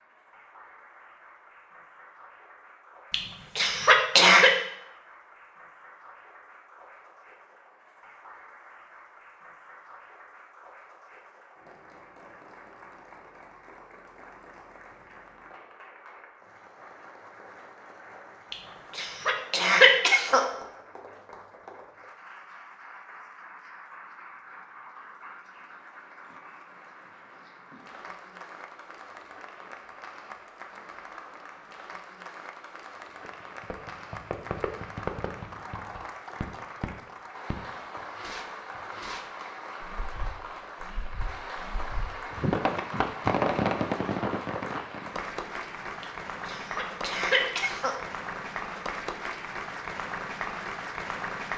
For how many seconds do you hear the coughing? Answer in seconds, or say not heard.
5 s.